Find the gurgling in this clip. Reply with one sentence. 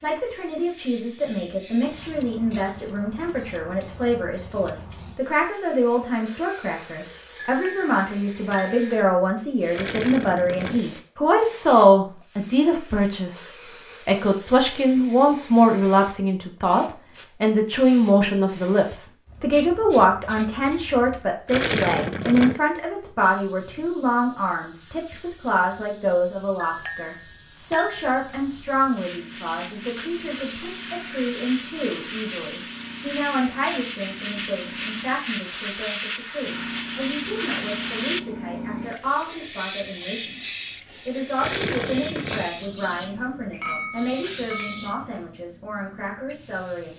The gurgling can be heard from 9.7 to 10.8 s, from 21.4 to 22.6 s and from 41.4 to 42.5 s.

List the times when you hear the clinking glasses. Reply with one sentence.
The clinking glasses can be heard from 7.3 to 9.0 s, from 26.6 to 28.1 s and from 43.6 to 45.0 s.